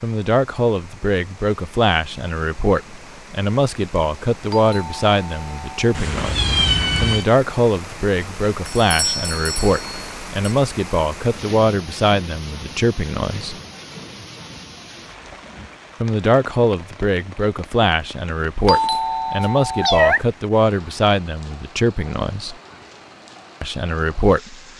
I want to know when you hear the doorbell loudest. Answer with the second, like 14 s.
19 s.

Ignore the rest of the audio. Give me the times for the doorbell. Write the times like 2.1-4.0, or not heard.
4.5-6.0, 8.7-10.6, 18.6-20.1.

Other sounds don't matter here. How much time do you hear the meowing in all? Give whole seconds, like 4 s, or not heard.
2 s.